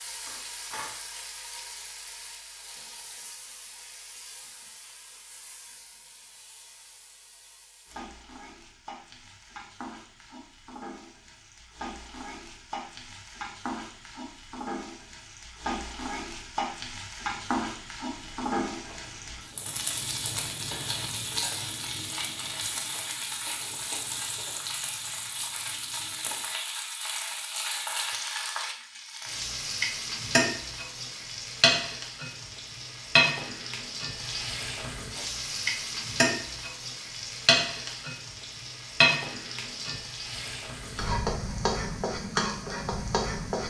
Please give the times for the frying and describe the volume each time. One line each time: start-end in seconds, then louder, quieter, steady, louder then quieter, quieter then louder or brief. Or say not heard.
0.0-43.6 louder.